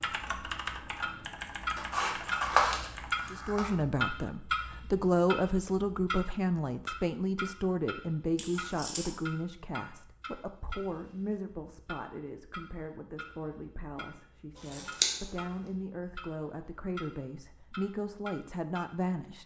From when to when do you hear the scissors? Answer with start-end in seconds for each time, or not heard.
1.8-3.8, 8.3-9.2, 14.7-15.1.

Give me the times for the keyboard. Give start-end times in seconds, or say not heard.
0.0-3.5.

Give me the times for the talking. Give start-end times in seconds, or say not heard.
3.3-19.4.